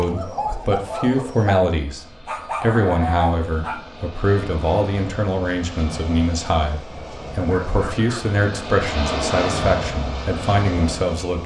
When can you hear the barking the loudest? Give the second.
3 s.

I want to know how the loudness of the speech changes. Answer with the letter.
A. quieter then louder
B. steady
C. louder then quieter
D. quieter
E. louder
B.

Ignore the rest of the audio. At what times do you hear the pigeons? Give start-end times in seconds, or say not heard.
0.0-1.6.